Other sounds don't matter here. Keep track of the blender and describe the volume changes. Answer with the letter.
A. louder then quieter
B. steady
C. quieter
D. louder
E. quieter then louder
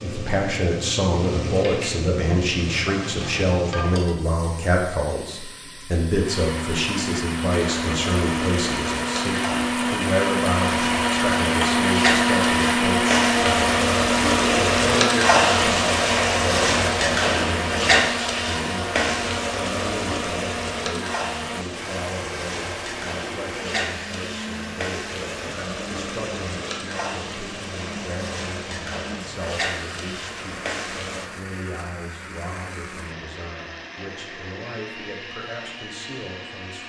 C.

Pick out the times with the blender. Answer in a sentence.
You can hear the blender from 6.1 to 36.8 s.